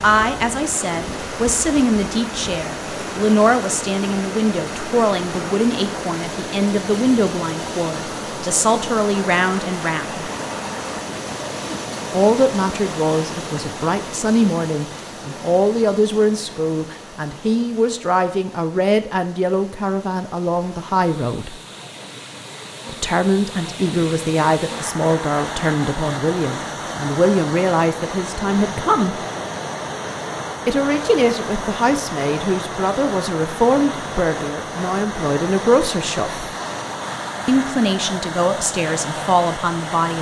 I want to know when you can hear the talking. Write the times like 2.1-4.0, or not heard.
0.0-10.3, 12.1-21.6, 22.9-29.2, 30.6-36.5, 37.5-40.1.